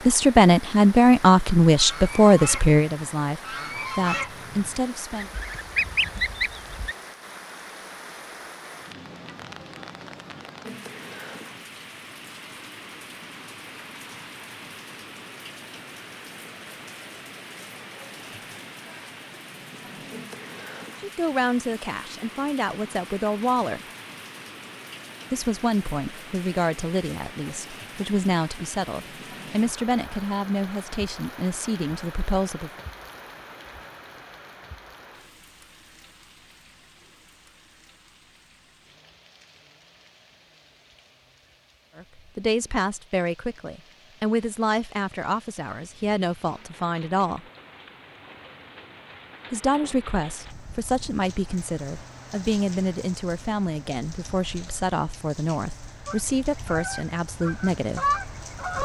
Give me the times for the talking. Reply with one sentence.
The talking can be heard from 0.1 to 5.3 s, from 21.0 to 23.9 s, from 25.3 to 32.8 s, from 42.0 to 47.4 s and from 49.5 to 58.0 s.